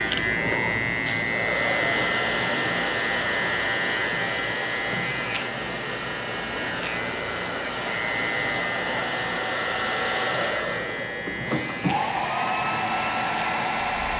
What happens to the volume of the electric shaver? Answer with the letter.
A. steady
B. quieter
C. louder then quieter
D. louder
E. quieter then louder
B.